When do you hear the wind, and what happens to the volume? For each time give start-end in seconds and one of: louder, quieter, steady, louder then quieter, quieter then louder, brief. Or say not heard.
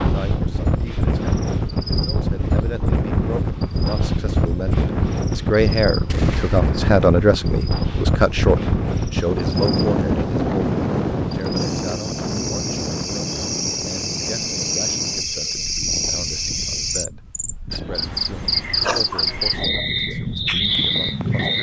0.0-21.5 quieter.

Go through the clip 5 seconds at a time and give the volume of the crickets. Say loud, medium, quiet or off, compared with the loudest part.
quiet, quiet, medium, loud, loud.